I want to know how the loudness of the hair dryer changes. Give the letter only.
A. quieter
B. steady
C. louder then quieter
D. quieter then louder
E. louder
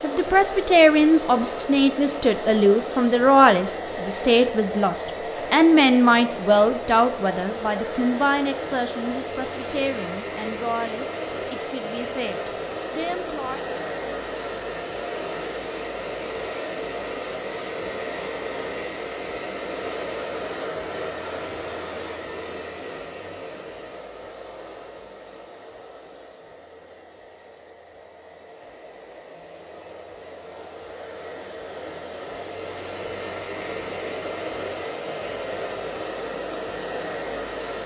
D.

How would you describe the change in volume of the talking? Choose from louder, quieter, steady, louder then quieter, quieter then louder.
quieter.